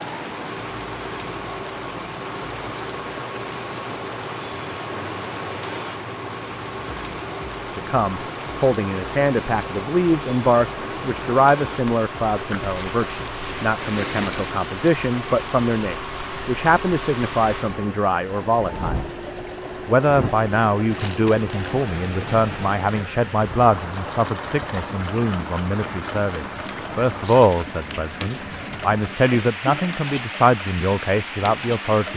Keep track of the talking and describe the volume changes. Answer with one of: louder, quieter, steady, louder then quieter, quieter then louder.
steady.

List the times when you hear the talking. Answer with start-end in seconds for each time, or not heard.
7.7-19.0, 19.9-32.1.